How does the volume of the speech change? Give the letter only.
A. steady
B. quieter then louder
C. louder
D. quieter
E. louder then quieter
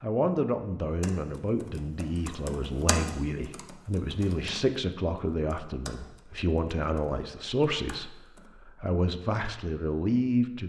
A.